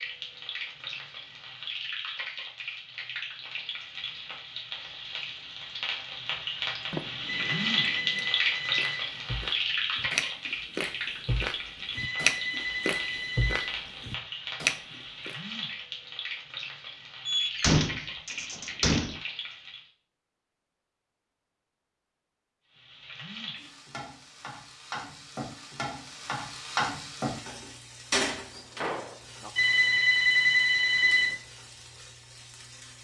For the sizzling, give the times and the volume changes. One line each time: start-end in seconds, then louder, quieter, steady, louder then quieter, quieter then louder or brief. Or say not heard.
0.0-19.9 louder then quieter
22.7-32.9 louder then quieter.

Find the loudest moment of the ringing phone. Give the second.
30 s.